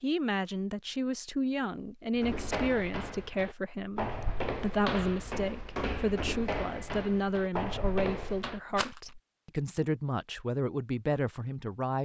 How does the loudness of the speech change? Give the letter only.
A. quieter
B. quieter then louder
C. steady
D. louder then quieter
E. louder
C.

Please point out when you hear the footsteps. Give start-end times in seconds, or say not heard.
2.1-8.6.